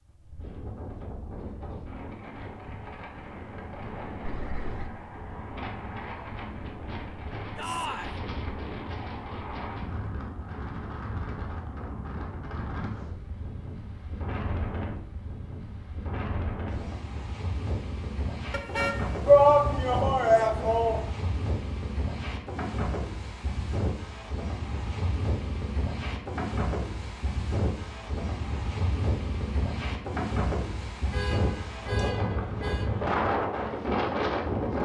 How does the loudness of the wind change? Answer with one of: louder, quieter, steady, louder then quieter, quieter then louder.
louder.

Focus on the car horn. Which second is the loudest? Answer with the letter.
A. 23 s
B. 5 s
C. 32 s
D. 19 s
D.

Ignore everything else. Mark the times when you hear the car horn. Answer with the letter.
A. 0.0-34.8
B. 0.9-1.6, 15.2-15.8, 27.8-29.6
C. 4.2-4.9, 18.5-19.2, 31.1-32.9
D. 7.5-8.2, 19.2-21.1
C.